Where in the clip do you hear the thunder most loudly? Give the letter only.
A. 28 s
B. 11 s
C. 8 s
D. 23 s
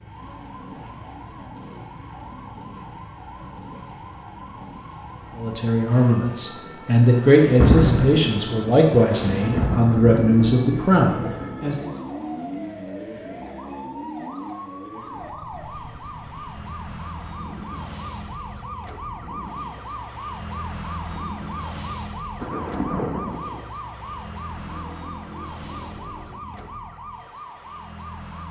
C.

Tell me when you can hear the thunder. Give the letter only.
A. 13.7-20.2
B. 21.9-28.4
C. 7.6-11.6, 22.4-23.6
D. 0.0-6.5
C.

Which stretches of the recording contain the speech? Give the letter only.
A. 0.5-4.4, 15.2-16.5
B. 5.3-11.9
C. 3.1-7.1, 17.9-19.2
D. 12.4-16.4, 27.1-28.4
B.